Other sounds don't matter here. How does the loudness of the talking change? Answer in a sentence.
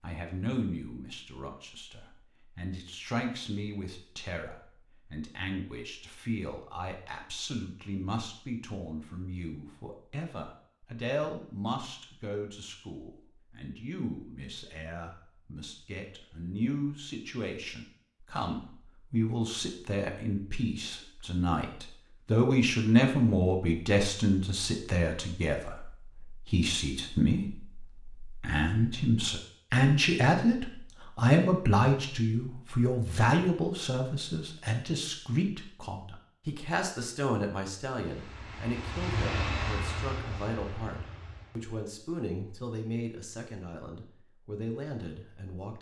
The loudness of the talking goes up, then down.